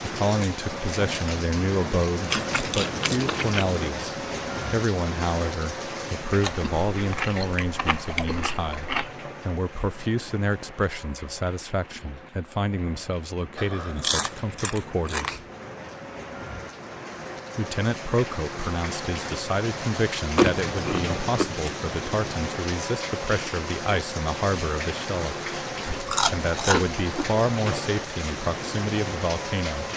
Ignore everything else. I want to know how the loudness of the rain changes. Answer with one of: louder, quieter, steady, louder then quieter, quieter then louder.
quieter then louder.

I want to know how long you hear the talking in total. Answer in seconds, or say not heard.
27 s.